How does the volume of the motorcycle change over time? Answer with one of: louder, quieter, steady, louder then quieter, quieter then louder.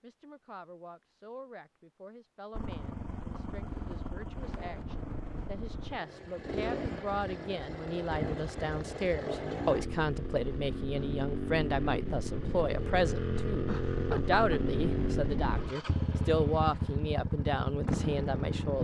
louder.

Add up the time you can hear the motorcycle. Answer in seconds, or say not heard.
16 s.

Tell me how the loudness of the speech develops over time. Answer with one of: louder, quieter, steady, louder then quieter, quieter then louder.
louder.